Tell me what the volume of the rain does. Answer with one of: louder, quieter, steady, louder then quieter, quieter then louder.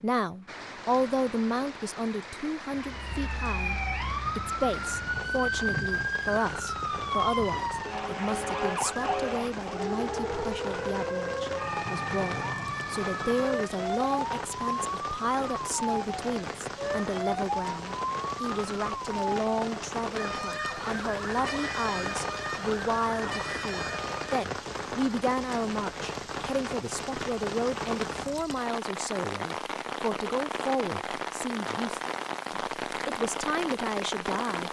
louder.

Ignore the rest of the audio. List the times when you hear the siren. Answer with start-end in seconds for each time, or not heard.
2.7-24.4.